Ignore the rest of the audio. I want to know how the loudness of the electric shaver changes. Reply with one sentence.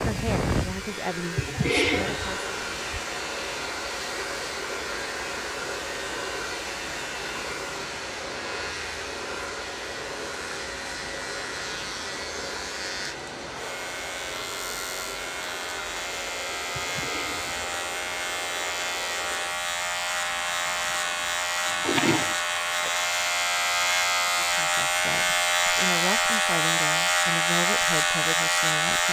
The volume of the electric shaver goes up.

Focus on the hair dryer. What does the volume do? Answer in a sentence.
The volume of the hair dryer goes down.